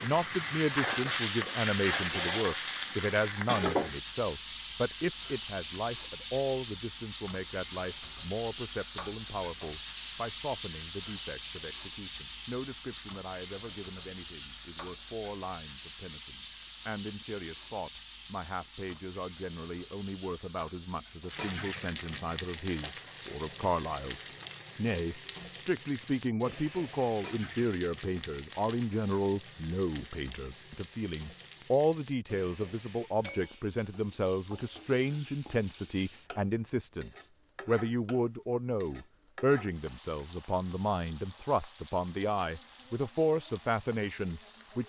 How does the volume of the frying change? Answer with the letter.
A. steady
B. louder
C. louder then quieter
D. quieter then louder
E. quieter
E.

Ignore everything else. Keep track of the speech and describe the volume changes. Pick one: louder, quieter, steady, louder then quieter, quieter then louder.
quieter then louder.